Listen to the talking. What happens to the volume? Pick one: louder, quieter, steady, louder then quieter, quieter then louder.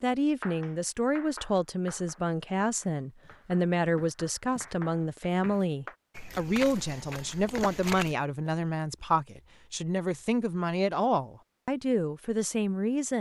steady.